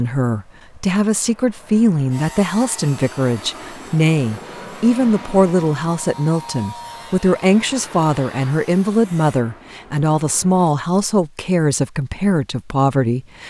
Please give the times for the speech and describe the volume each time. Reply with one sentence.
You can hear the speech from 0.0 to 13.4 s, at a steady volume.